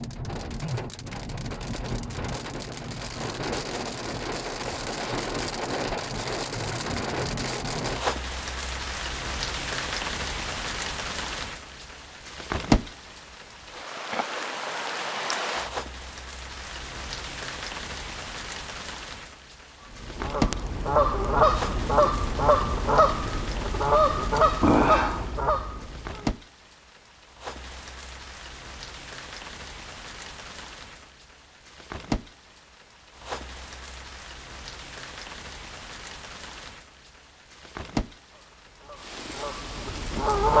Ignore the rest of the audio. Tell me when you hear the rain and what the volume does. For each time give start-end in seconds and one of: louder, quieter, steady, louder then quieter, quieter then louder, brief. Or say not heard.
0.0-40.5 quieter.